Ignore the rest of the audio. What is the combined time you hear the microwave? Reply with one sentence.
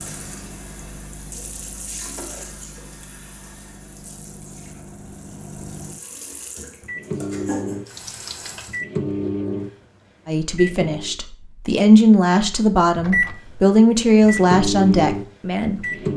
The microwave can be heard for 15 seconds in total.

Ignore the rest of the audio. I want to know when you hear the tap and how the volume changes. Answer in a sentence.
You can hear the tap from 0.0 to 8.8 s, getting quieter then louder.